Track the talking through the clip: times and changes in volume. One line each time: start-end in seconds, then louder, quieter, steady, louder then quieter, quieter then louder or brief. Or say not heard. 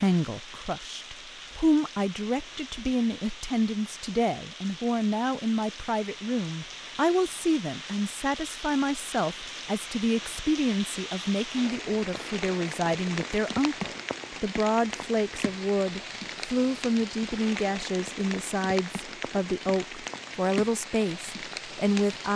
0.0-22.3 steady.